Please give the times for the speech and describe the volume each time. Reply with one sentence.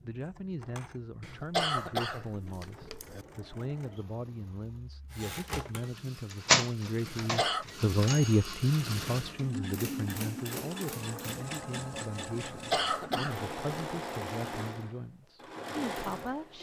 The speech can be heard from 0.0 to 16.5 s, getting louder then quieter.